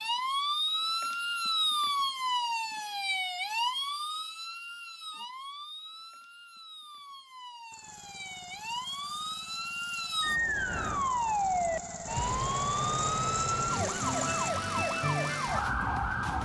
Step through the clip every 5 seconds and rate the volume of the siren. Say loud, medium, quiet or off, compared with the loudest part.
loud, medium, loud, loud.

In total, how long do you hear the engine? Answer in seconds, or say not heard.
7 s.